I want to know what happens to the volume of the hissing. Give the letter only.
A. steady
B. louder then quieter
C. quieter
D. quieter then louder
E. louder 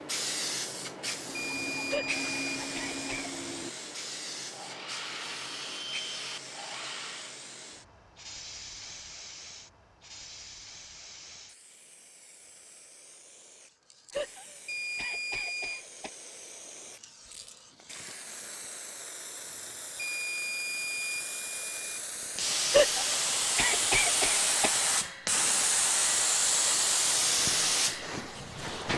D.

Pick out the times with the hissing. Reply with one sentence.
You can hear the hissing from 0.0 to 28.9 s.